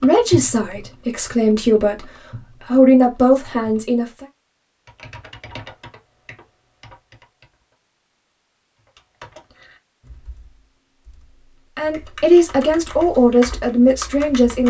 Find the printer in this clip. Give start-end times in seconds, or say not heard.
not heard.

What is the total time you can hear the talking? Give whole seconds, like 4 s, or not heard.
7 s.